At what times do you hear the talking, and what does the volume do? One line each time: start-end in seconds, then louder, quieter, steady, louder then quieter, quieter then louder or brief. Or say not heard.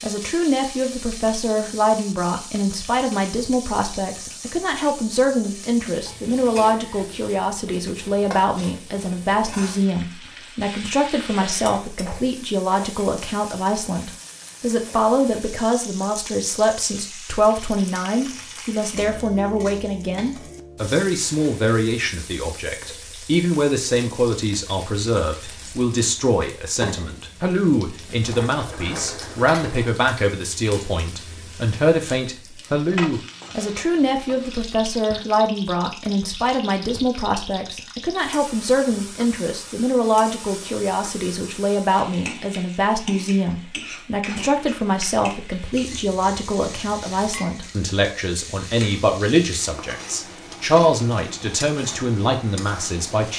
0.0-53.3 steady.